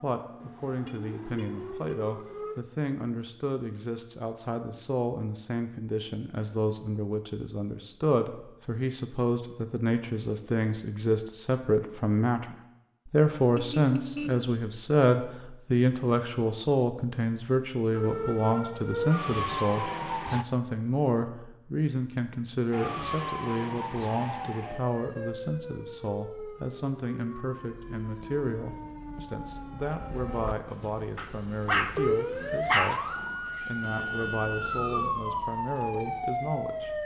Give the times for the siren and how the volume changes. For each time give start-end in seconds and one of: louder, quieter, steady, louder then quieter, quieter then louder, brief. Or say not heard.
0.0-2.6 brief
17.9-20.4 brief
22.7-37.0 quieter then louder.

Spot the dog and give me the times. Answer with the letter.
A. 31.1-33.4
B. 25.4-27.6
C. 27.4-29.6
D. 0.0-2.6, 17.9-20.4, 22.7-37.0
A.